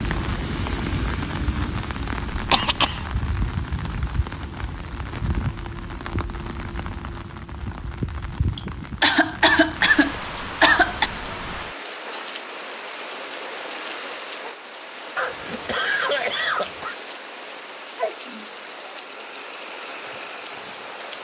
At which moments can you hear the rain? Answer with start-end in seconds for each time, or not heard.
0.0-21.1.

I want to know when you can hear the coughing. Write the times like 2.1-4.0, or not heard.
2.3-3.0, 8.6-11.1, 15.2-16.9.